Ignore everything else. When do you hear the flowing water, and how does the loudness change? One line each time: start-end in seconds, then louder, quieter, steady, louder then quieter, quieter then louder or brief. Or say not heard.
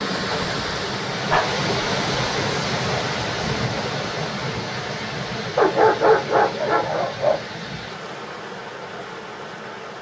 0.0-9.9 quieter.